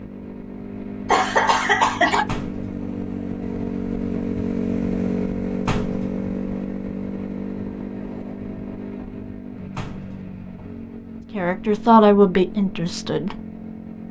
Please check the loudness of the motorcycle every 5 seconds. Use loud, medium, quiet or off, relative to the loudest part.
loud, loud, medium.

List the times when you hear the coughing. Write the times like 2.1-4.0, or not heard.
1.1-2.2.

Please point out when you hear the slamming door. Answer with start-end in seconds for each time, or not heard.
2.2-2.8, 5.7-6.2, 9.8-10.2.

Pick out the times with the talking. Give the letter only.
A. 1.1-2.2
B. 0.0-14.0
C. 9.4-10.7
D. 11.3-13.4
D.